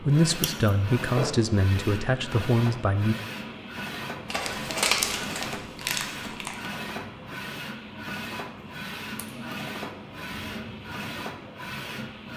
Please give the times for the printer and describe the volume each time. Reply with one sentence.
The printer can be heard from 0.0 to 12.3 s, at a steady volume.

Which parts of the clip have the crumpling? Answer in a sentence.
You can hear the crumpling from 4.5 to 6.7 s.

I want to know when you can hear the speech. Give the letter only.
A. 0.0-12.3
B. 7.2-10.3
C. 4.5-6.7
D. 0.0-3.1
D.